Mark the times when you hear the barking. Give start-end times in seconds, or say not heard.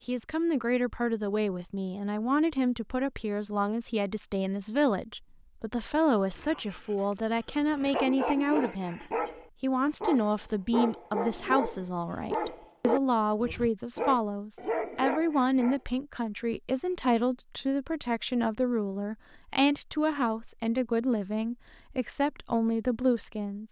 6.3-15.8.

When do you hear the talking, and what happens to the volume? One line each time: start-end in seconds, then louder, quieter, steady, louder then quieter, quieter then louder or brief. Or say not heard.
0.1-23.6 steady.